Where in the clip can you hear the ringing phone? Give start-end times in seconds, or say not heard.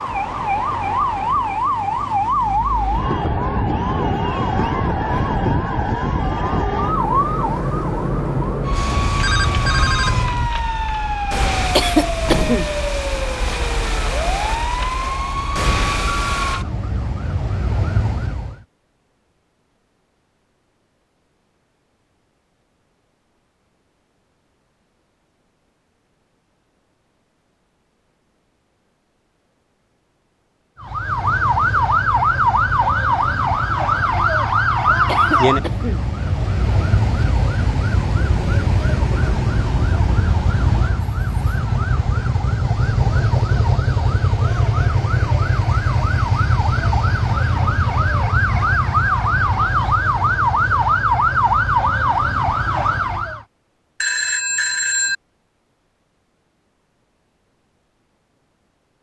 8.9-10.5, 54.0-55.1.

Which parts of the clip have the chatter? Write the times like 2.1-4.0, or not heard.
not heard.